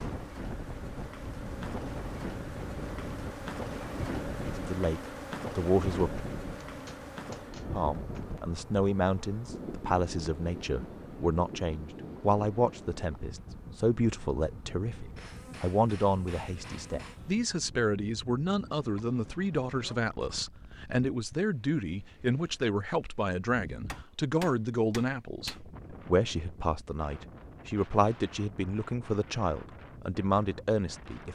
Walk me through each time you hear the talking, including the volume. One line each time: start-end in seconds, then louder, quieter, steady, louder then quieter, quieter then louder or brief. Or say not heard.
4.5-6.2 brief
7.7-31.3 steady.